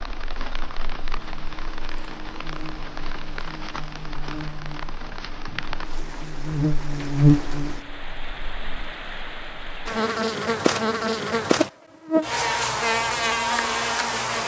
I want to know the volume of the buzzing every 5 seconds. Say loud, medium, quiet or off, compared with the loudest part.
quiet, loud, loud.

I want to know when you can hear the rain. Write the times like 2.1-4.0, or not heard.
0.0-10.2.